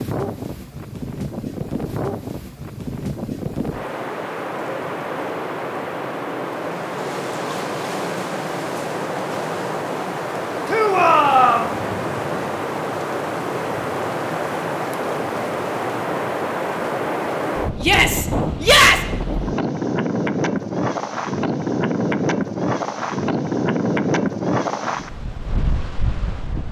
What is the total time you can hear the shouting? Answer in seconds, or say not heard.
2 s.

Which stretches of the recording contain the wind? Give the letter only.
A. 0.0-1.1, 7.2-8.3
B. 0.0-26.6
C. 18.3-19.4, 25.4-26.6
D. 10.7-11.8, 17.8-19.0
B.